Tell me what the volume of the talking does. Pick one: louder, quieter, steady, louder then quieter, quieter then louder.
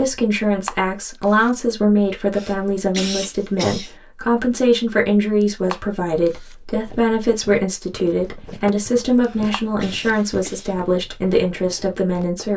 steady.